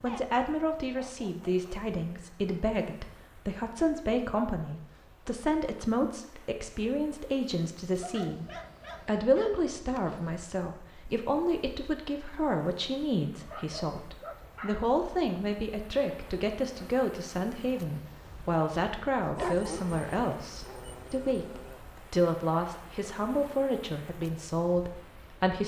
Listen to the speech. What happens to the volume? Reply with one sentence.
The loudness of the speech stays about the same.